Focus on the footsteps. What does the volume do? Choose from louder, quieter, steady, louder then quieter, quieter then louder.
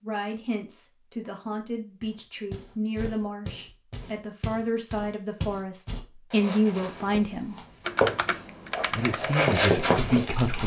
louder.